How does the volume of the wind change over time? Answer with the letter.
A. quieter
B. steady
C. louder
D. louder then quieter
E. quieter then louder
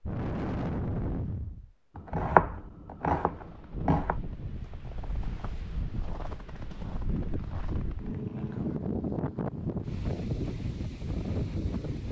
E.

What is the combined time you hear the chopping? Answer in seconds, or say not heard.
2 s.